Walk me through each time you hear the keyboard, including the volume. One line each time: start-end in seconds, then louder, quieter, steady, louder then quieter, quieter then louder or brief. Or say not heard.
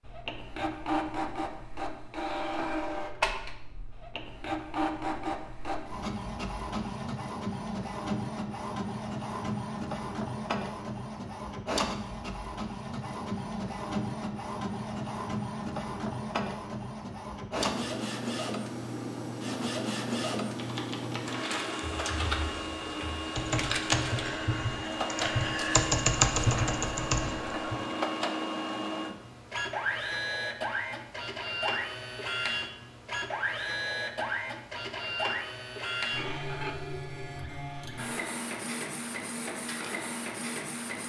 20.6-27.8 louder.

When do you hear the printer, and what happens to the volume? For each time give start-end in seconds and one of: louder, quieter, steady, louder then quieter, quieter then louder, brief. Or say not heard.
0.0-41.0 steady.